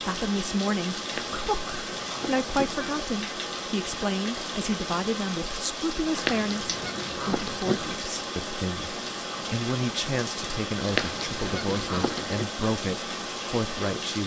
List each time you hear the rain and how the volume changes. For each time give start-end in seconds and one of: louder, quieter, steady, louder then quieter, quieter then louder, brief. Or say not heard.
0.0-14.2 steady.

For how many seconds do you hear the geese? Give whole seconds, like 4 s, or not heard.
5 s.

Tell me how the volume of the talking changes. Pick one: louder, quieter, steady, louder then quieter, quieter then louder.
steady.